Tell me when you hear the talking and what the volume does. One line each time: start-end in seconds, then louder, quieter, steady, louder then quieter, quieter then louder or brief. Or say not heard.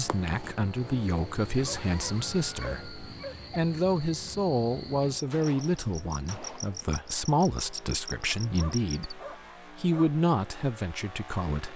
0.0-11.7 steady.